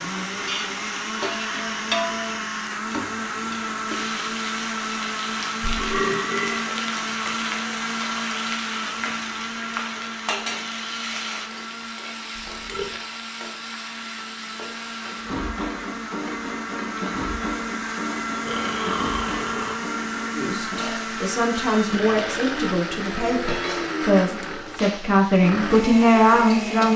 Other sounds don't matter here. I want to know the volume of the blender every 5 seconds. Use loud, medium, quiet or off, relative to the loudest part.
loud, loud, medium, loud, loud, loud.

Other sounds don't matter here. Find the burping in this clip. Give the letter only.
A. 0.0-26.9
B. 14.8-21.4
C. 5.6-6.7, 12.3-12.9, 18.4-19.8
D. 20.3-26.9
C.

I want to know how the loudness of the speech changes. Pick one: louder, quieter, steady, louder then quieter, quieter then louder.
louder.